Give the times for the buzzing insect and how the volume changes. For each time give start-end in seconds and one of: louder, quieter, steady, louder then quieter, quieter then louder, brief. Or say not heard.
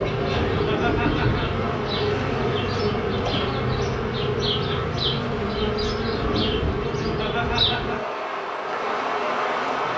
0.0-9.9 steady.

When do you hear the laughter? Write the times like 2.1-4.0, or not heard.
0.5-1.4, 7.0-8.0.